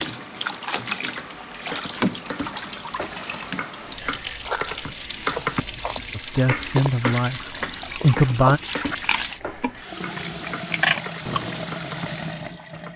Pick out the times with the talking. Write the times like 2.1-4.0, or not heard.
6.2-8.6.